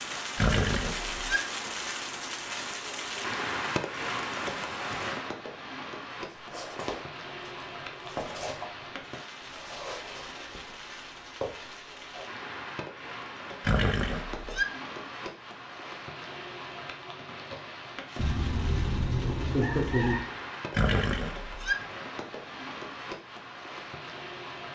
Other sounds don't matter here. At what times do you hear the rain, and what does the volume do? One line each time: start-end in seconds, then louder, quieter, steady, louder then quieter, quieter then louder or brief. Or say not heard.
0.0-24.7 quieter.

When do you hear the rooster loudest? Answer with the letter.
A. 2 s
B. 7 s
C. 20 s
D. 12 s
C.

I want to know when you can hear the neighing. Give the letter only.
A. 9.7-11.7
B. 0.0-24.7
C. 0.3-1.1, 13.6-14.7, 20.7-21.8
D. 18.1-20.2
C.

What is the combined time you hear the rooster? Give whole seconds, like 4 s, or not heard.
2 s.